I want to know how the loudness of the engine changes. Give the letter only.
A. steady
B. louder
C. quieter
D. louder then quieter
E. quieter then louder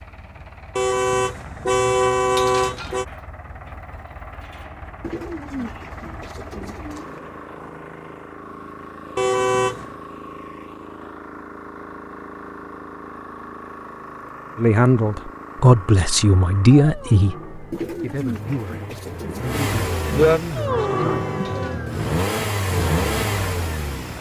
B.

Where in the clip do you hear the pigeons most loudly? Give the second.
20 s.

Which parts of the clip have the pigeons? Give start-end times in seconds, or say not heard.
5.0-7.2, 17.7-20.4.